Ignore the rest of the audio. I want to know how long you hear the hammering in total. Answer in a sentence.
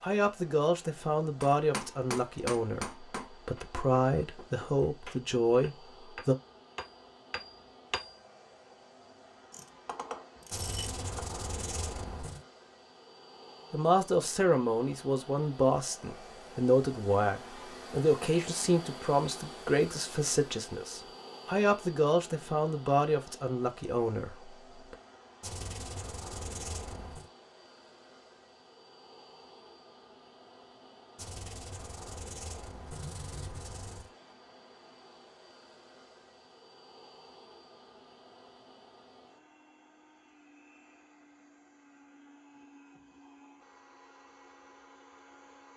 The hammering can be heard for 7 seconds in total.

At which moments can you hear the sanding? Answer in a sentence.
You can hear the sanding from 10.5 to 12.4 s, from 25.4 to 27.3 s and from 31.1 to 34.1 s.